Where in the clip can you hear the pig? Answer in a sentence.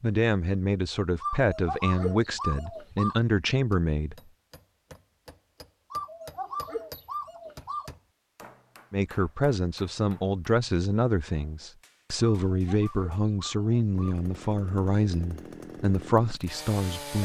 The pig can't be heard in this clip.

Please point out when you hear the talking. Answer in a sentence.
You can hear the talking from 0.0 to 4.2 s and from 8.9 to 17.2 s.